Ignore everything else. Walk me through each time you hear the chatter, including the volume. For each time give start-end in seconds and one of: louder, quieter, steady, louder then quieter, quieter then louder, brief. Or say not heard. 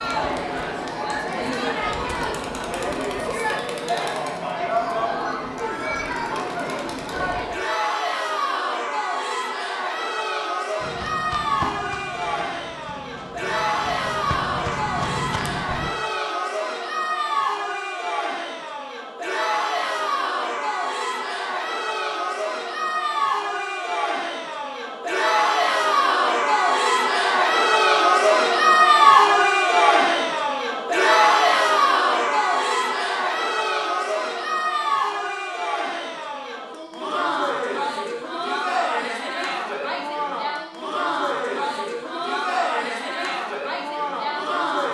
0.0-44.8 louder then quieter.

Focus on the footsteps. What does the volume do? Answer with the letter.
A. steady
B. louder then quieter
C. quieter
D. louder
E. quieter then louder
E.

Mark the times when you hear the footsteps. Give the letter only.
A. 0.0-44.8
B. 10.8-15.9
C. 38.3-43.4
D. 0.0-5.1
B.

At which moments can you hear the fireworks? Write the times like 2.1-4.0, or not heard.
not heard.